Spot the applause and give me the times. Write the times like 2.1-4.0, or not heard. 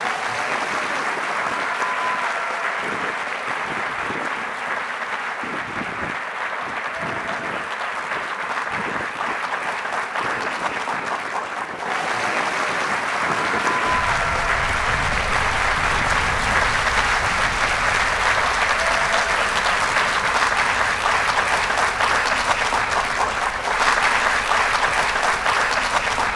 0.0-26.3.